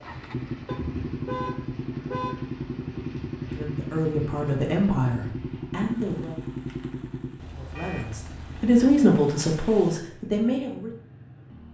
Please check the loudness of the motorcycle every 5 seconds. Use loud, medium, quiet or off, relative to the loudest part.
loud, loud, quiet.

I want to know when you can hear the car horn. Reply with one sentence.
You can hear the car horn from 0.7 to 2.4 s and from 7.3 to 8.8 s.